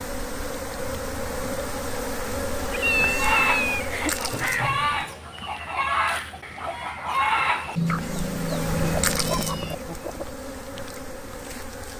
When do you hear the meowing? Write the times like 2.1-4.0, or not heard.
2.7-4.2, 7.8-9.8.